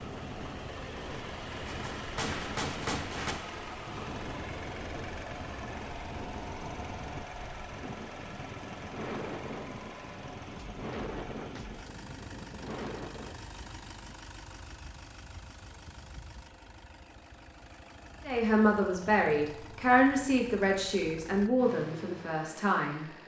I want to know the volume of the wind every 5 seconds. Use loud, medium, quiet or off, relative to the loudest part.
loud, loud, loud, off, off.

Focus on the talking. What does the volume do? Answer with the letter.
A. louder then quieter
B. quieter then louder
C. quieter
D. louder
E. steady
C.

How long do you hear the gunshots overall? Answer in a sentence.
The gunshots can be heard for 2 seconds in total.